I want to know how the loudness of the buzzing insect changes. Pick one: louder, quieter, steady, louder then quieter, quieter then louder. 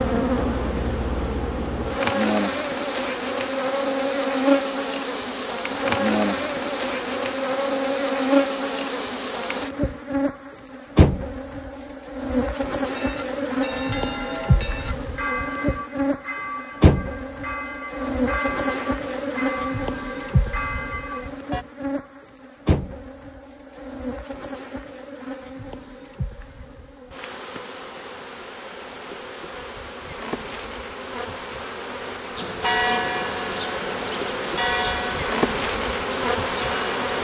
quieter then louder.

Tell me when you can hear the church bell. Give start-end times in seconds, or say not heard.
12.9-21.6, 32.4-37.1.